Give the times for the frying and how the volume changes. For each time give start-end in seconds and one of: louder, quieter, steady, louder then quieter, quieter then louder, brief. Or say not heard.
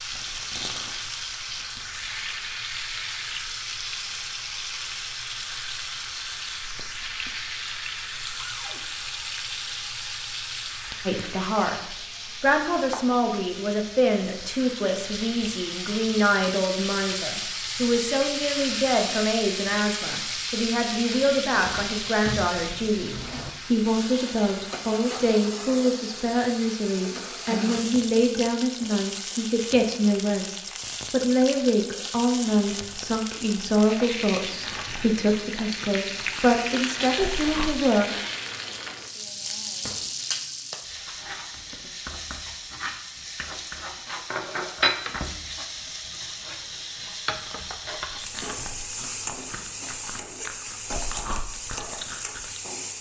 0.0-52.9 steady.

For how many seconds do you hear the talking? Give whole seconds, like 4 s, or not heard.
27 s.